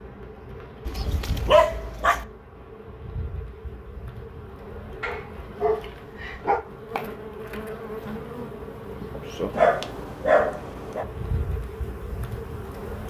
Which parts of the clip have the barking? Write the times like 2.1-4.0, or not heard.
0.8-2.2, 5.0-6.6, 9.5-11.1.